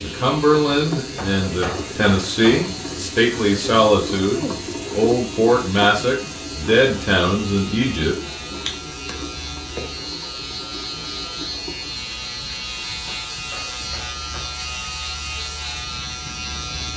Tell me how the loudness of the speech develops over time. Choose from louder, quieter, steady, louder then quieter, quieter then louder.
steady.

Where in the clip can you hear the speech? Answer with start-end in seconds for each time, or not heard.
0.0-8.2.